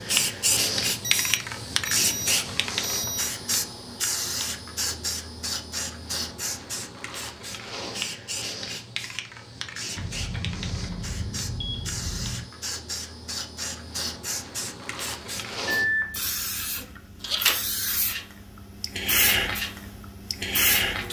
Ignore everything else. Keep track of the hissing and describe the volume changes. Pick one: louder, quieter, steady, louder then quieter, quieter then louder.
quieter then louder.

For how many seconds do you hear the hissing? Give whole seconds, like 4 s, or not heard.
21 s.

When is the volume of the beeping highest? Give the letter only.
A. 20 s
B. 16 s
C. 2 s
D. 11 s
B.